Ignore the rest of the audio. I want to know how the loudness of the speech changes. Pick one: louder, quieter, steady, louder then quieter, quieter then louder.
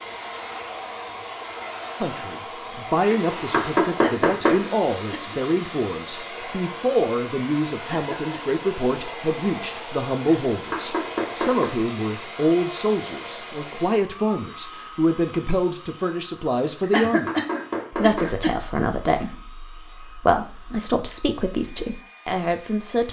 steady.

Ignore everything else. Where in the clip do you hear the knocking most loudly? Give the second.
4 s.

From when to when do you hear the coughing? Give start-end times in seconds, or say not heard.
4.0-5.4, 7.9-8.6, 16.9-18.5.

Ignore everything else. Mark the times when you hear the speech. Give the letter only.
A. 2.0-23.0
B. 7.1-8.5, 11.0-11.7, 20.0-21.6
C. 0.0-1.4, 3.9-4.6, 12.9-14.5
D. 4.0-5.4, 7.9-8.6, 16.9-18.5
A.